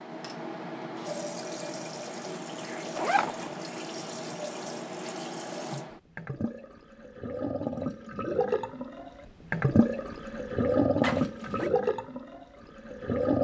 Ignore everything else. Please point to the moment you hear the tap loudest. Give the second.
11 s.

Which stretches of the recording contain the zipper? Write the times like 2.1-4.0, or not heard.
3.0-3.5, 11.0-11.7.